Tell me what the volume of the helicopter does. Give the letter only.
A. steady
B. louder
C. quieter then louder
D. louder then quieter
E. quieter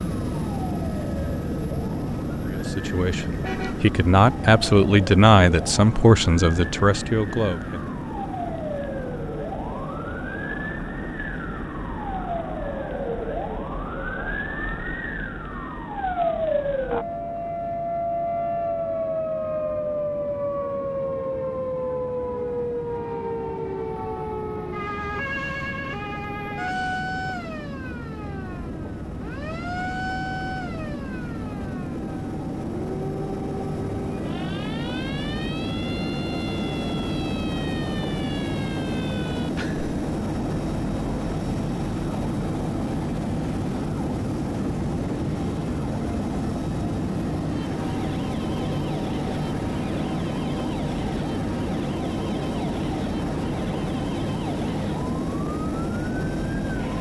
C.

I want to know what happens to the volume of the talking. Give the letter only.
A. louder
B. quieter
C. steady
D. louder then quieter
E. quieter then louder
D.